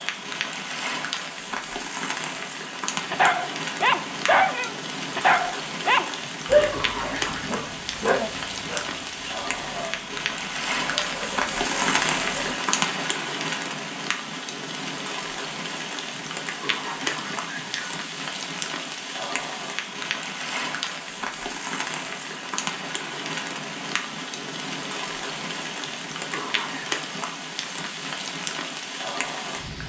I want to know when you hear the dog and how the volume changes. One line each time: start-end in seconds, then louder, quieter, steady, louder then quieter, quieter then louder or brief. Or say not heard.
3.1-12.6 quieter.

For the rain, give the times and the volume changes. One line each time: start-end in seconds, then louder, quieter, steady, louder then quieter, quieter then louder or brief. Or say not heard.
0.0-29.8 steady.